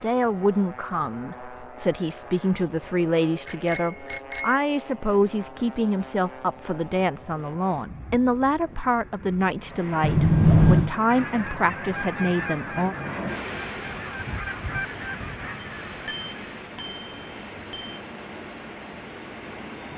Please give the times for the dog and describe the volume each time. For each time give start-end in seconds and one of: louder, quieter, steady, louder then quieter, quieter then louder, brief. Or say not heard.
not heard.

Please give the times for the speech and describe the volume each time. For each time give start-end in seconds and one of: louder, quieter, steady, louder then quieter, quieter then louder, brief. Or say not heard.
0.0-12.9 steady.